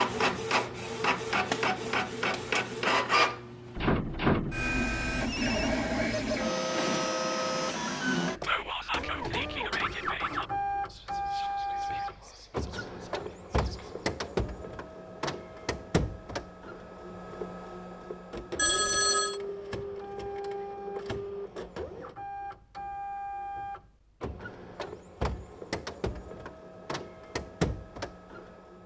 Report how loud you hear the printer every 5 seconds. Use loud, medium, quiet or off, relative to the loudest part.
loud, loud, medium, medium, medium, medium.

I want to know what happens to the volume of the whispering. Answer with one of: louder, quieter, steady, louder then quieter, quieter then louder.
quieter.